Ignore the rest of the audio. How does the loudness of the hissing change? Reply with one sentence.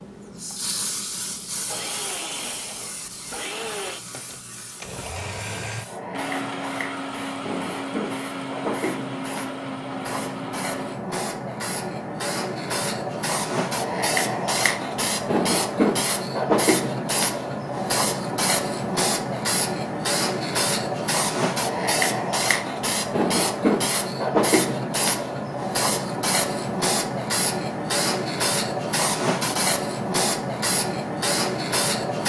The volume of the hissing goes up.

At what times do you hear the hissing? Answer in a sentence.
The hissing can be heard from 0.0 to 32.2 s.